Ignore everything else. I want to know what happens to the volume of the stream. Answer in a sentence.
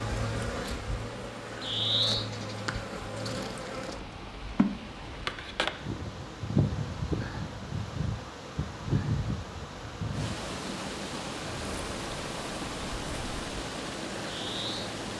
The loudness of the stream goes up.